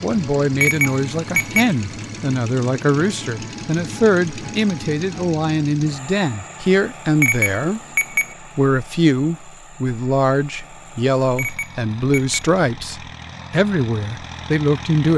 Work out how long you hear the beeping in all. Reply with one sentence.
The beeping can be heard for 3 seconds in total.